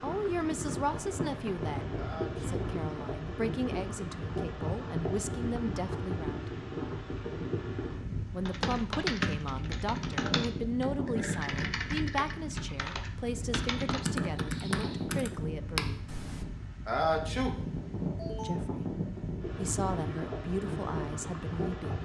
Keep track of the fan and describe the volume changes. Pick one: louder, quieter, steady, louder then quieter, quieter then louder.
steady.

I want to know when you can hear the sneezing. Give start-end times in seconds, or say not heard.
1.9-2.7, 16.9-18.5.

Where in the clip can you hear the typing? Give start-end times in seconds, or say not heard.
8.4-16.4.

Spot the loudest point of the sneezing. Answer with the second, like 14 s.
17 s.